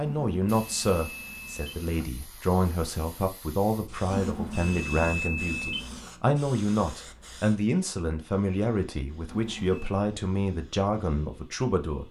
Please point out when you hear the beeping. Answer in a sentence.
The beeping can be heard from 0.0 to 1.9 s, from 4.0 to 6.1 s and from 9.2 to 10.0 s.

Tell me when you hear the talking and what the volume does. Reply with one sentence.
The talking can be heard from 0.0 to 12.0 s, at a steady volume.